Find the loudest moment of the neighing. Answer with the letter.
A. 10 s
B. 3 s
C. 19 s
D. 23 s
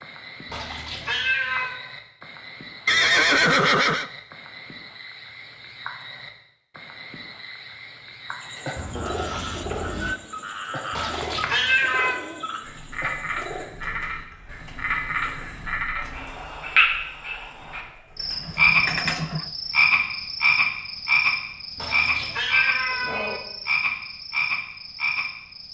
B.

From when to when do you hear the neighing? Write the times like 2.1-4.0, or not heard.
2.9-4.1, 8.8-10.2, 18.4-19.5.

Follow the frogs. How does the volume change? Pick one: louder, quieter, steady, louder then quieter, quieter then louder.
louder.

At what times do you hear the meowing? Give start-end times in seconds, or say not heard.
0.5-1.8, 10.9-12.2, 21.8-23.4.